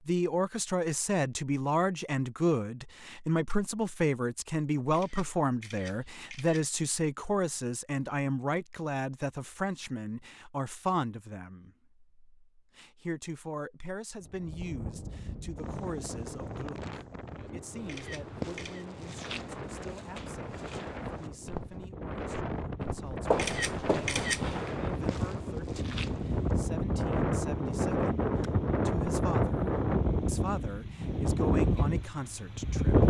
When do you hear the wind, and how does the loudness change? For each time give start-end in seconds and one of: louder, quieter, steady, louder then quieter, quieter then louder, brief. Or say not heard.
14.2-33.0 louder.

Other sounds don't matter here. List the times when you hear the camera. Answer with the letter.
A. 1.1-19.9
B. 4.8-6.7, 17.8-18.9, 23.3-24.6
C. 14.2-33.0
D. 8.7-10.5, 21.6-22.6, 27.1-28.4
B.